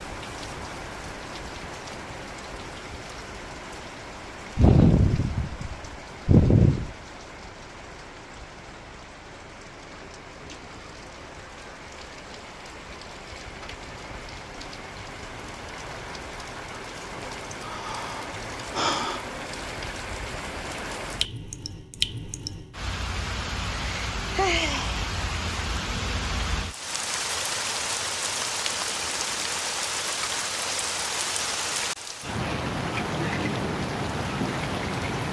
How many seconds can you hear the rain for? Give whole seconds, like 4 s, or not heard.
35 s.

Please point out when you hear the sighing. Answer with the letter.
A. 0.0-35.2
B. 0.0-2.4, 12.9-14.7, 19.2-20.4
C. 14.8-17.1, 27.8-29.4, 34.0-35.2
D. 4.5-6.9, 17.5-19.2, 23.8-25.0
D.